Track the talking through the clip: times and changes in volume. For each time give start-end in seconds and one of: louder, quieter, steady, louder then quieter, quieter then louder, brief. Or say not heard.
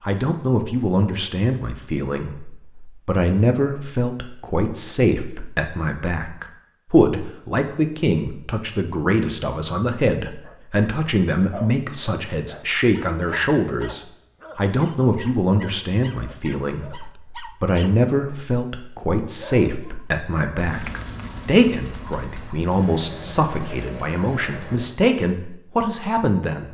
0.0-26.6 steady.